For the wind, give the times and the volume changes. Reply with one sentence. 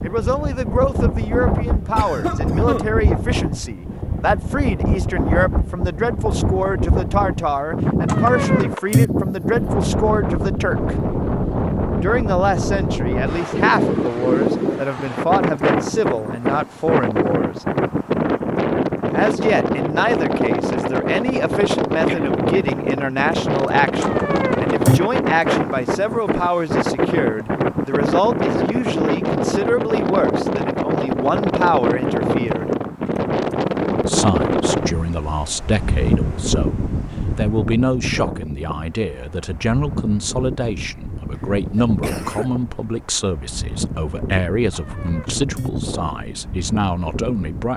The wind can be heard from 0.0 to 47.7 s, getting quieter.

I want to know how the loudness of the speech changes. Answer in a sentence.
The volume of the speech stays about the same.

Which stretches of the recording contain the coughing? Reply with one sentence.
You can hear the coughing from 1.9 to 3.0 s, from 22.1 to 22.6 s and from 41.4 to 42.5 s.